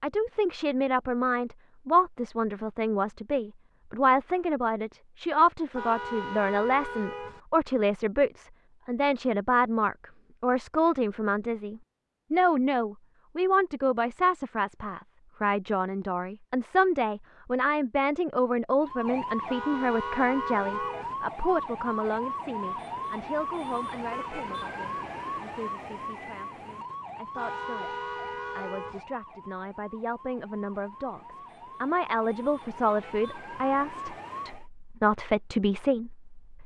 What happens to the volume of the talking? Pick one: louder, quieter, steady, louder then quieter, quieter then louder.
quieter then louder.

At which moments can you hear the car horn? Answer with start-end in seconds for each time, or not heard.
5.7-7.4, 19.4-21.1, 27.3-29.1.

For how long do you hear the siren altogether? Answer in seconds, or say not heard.
16 s.